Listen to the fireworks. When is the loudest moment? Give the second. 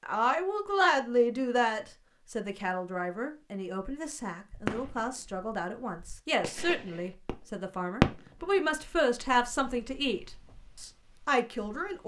8 s.